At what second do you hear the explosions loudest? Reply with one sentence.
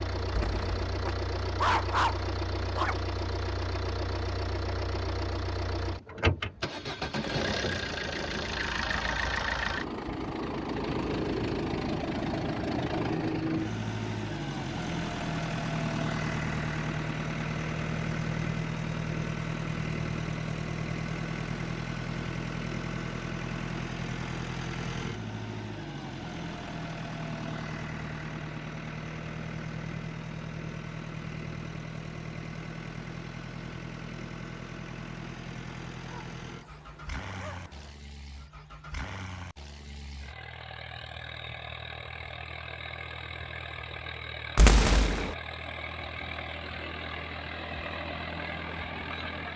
The loudest moment of the explosions is at 45 seconds.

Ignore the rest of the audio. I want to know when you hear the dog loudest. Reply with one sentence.
The volume of the dog peaks at 2 seconds.